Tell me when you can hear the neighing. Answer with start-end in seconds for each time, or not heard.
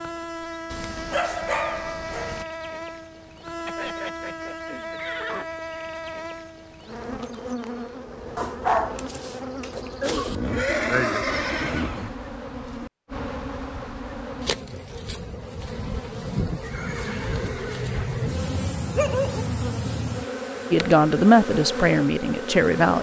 3.6-5.5, 10.3-12.2, 16.6-17.9.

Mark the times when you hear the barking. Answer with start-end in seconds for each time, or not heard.
0.7-2.5, 8.3-10.3, 18.1-19.4.